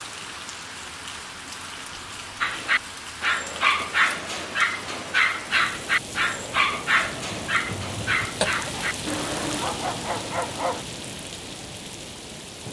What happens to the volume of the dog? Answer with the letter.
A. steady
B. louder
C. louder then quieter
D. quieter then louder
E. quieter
E.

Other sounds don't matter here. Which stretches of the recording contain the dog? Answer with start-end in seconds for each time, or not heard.
2.4-10.8.